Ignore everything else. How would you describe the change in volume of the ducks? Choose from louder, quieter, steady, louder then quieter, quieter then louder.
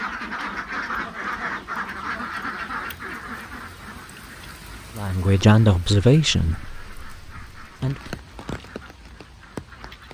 quieter.